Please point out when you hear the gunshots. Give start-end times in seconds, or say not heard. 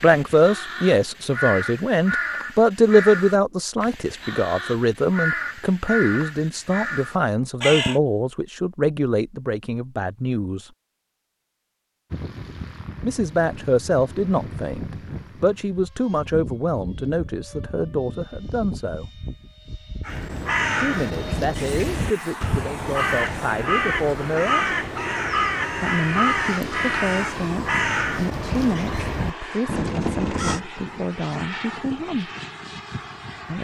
not heard.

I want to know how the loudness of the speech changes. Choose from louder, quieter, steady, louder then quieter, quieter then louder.
quieter.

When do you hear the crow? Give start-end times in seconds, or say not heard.
0.0-8.0, 20.1-30.6.